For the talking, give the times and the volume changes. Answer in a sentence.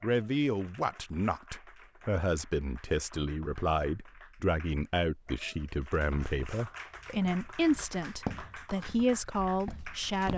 You can hear the talking from 0.0 to 10.3 s, at a steady volume.